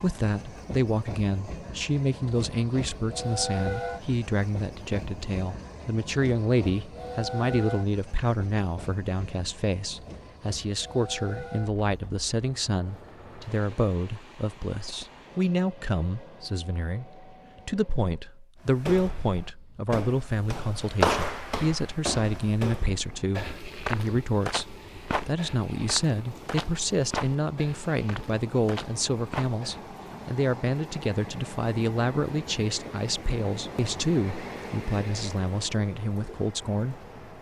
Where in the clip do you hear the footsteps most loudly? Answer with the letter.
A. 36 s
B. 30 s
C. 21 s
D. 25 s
C.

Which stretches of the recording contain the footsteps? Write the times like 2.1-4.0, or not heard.
18.6-29.9.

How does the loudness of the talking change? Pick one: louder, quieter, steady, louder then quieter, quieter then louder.
steady.